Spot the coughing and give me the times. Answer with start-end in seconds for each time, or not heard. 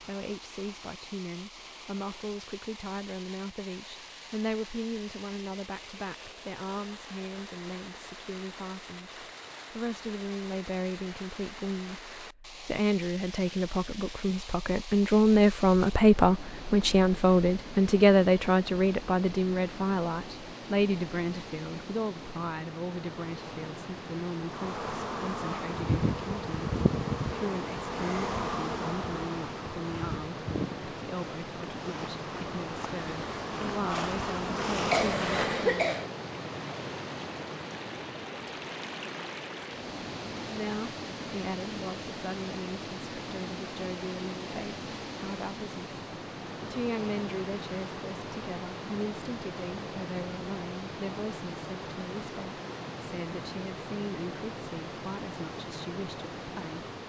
34.9-36.1.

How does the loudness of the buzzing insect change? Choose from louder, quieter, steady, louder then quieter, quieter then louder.
quieter then louder.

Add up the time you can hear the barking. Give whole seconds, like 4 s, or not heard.
not heard.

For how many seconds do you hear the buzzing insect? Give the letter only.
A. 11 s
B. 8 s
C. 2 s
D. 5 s
A.